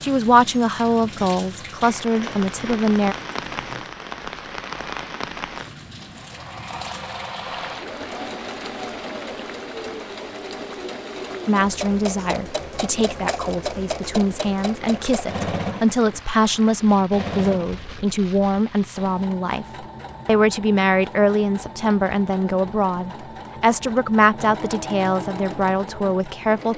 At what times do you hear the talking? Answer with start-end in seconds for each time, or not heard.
0.0-3.1, 11.4-26.7.